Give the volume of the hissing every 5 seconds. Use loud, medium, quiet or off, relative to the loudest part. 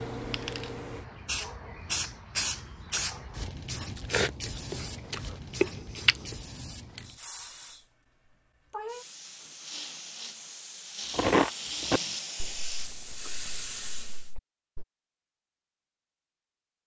loud, medium, loud, off.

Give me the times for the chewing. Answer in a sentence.
The chewing can be heard from 2.5 to 6.3 s and from 11.1 to 14.8 s.